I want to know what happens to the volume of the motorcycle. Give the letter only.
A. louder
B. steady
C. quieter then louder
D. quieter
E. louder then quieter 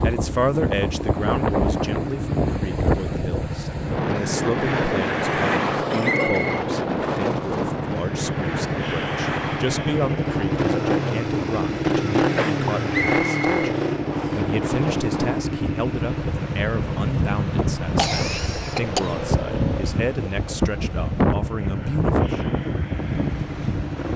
E.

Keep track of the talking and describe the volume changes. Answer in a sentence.
The loudness of the talking stays about the same.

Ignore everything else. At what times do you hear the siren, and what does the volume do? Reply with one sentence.
The siren can't be heard in this clip.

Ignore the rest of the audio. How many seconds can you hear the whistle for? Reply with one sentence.
The whistle can be heard for 2 seconds in total.